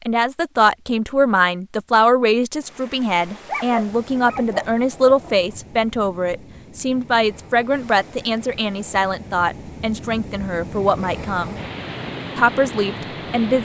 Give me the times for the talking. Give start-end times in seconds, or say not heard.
0.1-11.6, 12.3-13.6.